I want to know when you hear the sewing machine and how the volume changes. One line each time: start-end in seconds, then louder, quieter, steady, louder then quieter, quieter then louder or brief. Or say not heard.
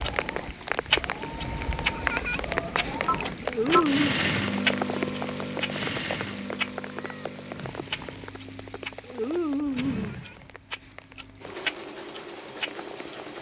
0.0-13.3 louder then quieter.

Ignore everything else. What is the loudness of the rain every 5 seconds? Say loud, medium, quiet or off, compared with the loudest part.
loud, medium, quiet.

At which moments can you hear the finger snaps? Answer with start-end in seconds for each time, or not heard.
3.4-4.2, 9.0-10.2.